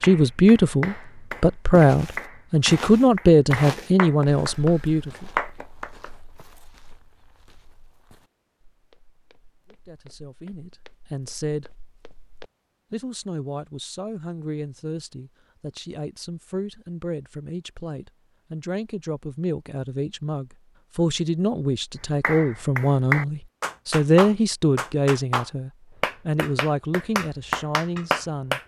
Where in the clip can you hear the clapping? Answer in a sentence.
You can hear the clapping from 0.0 to 6.1 s and from 22.2 to 28.6 s.